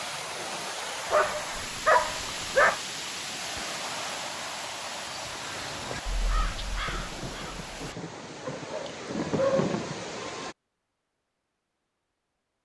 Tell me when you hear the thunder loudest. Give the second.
10 s.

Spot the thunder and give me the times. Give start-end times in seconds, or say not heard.
6.8-10.1.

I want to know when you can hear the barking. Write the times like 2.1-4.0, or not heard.
1.1-2.8, 8.4-9.8.